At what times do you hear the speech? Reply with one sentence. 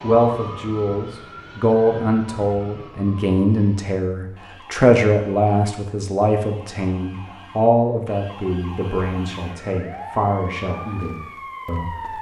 You can hear the speech from 0.0 to 12.1 s.